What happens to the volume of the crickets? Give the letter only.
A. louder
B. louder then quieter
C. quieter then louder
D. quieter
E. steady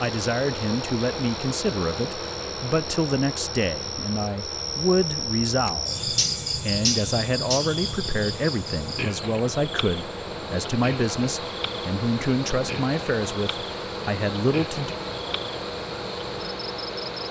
B.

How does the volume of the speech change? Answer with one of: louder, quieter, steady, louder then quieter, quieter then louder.
steady.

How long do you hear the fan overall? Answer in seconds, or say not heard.
17 s.